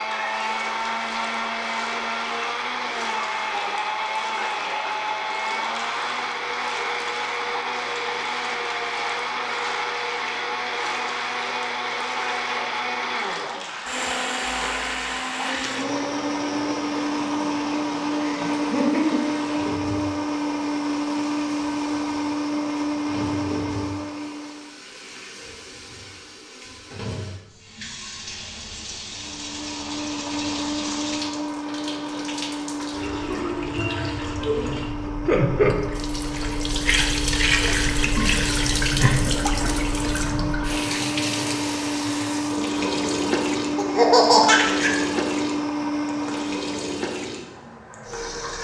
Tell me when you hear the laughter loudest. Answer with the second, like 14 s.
44 s.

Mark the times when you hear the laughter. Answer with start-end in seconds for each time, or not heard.
18.2-19.2, 43.8-44.9.